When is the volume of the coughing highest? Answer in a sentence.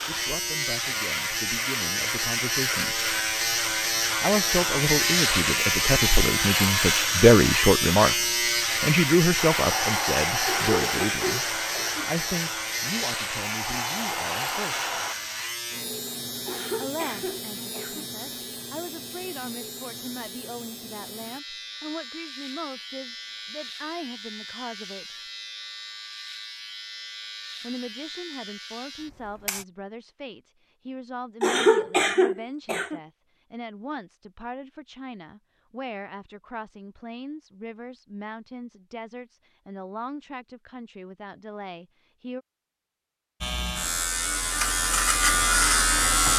The volume of the coughing peaks at 32 seconds.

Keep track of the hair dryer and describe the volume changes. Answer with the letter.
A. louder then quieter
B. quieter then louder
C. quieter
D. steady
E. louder
B.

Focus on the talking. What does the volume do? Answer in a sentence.
The volume of the talking goes down.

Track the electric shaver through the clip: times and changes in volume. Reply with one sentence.
You can hear the electric shaver from 0.0 to 29.6 s, getting quieter; and briefly from 43.4 to 46.3 s.